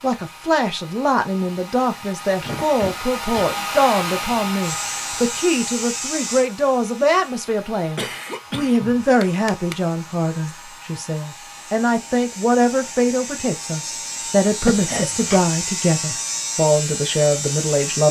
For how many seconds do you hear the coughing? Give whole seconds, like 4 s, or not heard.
4 s.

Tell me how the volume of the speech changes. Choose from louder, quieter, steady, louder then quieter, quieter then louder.
steady.